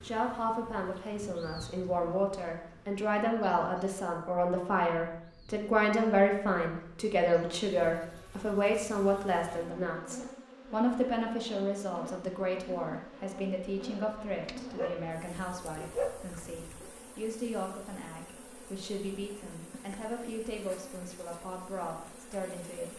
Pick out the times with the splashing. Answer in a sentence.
The splashing can't be heard in this clip.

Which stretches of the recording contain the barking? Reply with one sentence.
The barking can be heard from 14.0 to 16.9 s.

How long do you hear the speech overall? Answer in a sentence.
The speech can be heard for 23 seconds in total.